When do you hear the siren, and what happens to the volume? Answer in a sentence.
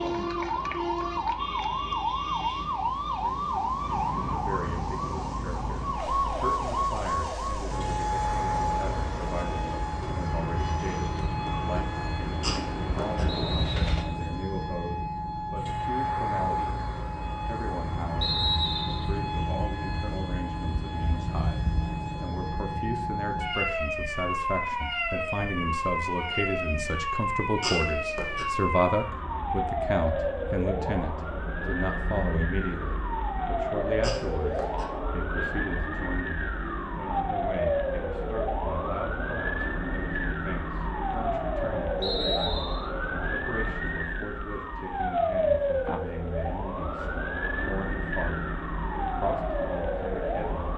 The siren can be heard from 0.0 to 50.7 s, at a steady volume.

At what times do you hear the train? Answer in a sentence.
You can hear the train from 0.1 to 14.1 s.